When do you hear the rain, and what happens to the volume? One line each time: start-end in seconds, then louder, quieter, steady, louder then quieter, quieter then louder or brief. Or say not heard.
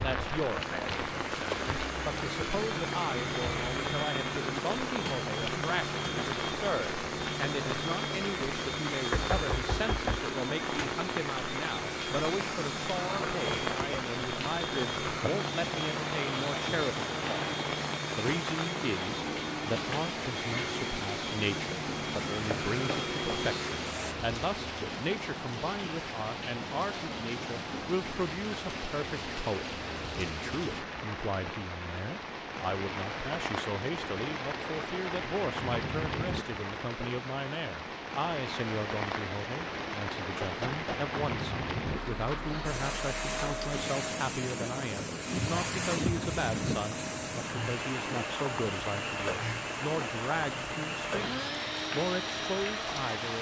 0.0-53.3 steady.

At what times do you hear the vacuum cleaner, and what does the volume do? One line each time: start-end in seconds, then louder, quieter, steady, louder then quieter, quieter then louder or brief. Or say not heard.
0.0-24.1 steady
42.6-53.3 steady.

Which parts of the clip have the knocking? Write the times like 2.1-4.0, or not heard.
9.1-10.2, 22.5-23.4, 40.4-41.2.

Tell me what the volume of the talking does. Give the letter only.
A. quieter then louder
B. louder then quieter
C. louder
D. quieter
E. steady
E.